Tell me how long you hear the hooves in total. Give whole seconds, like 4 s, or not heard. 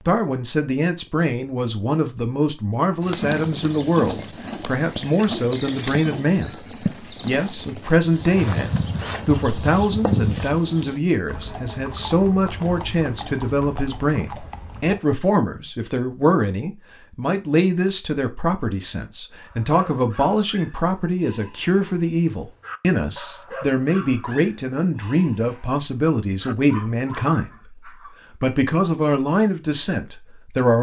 12 s.